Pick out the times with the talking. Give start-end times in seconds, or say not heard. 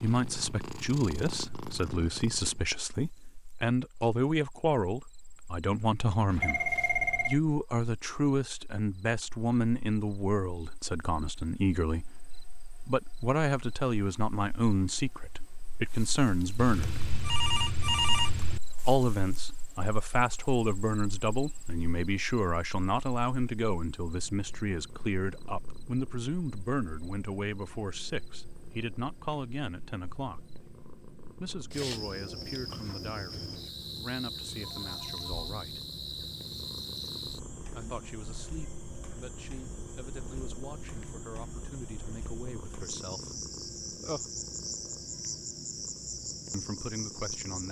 0.0-6.7, 7.2-17.0, 18.8-30.5, 31.4-35.9, 37.7-44.3, 46.5-47.6.